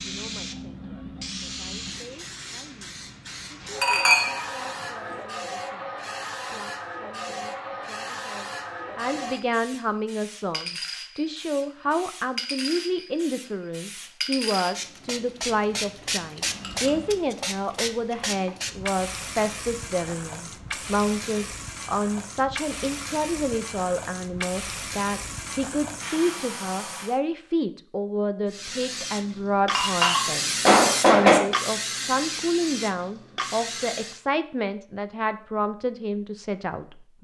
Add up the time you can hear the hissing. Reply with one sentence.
You can hear the hissing for 33 seconds altogether.